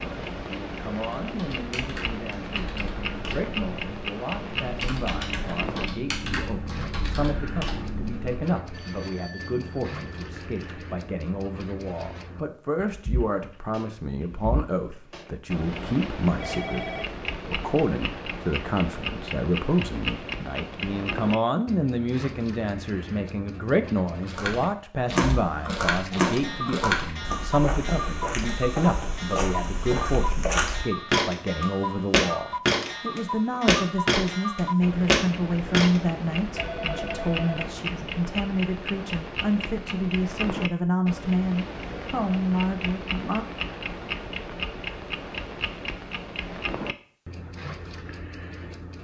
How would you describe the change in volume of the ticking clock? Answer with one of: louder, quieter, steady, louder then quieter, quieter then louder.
steady.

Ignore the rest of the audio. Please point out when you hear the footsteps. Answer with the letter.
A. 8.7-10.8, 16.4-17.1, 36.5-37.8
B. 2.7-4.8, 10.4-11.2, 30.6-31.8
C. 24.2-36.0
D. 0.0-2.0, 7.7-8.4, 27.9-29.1
C.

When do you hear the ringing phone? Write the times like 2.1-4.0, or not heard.
8.7-10.8, 16.4-17.1, 36.5-37.8.